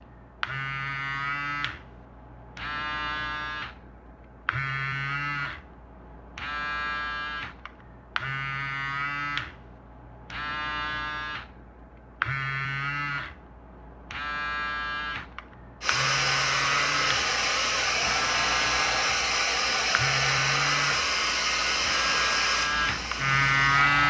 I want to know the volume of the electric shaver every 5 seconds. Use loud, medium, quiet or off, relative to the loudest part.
medium, medium, medium, medium, loud.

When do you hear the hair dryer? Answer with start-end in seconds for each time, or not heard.
15.8-24.0.